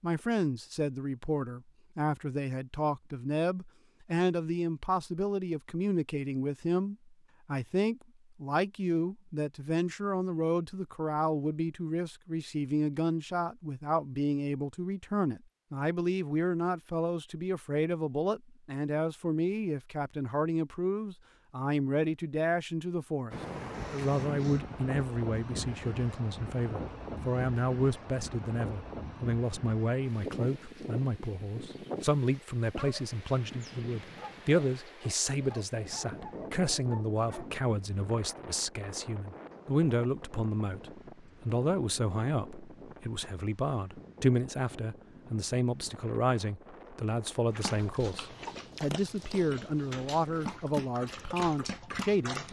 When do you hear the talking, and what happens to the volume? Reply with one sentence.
The talking can be heard from 0.0 to 52.4 s, at a steady volume.